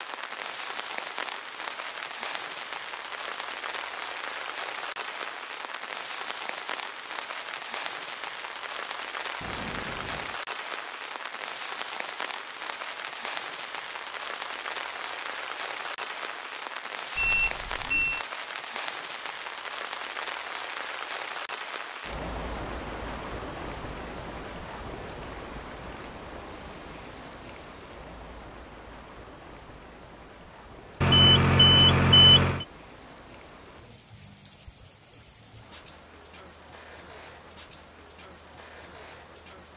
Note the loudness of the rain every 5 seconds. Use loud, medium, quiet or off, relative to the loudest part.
loud, loud, loud, loud, loud, medium, quiet, quiet.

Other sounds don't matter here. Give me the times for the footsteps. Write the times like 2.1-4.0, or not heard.
not heard.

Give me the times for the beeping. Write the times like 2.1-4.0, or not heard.
9.4-10.4, 17.1-18.2, 31.0-32.6.